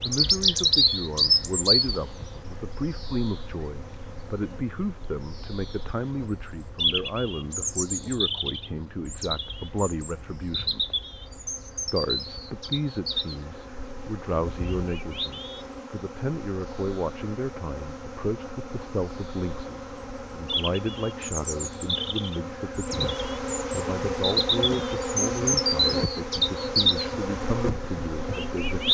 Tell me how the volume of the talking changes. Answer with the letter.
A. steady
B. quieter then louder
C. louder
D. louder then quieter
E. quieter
A.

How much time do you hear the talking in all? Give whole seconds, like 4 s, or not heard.
28 s.